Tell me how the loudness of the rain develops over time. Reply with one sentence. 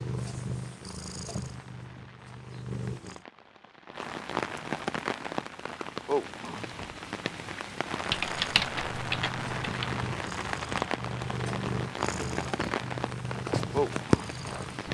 The loudness of the rain goes up.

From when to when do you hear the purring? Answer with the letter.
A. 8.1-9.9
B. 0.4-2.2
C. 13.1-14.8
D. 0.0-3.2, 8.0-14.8
D.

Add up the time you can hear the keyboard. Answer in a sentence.
The keyboard can be heard for 2 seconds in total.